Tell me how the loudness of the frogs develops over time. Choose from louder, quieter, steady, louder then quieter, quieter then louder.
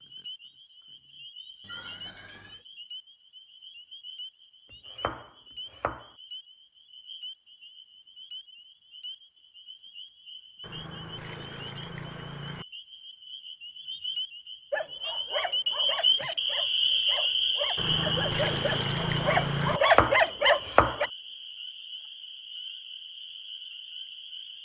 louder then quieter.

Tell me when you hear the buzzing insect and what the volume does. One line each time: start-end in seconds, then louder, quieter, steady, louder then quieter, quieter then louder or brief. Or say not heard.
not heard.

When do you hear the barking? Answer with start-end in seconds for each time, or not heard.
14.7-21.1.